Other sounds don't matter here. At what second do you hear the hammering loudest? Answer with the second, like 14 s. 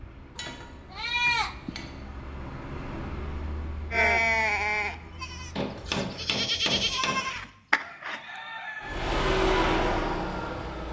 6 s.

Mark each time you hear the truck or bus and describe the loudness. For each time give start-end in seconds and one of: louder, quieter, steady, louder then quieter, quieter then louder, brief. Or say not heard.
0.0-6.0 louder then quieter
8.8-10.8 brief.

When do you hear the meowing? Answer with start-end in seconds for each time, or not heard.
not heard.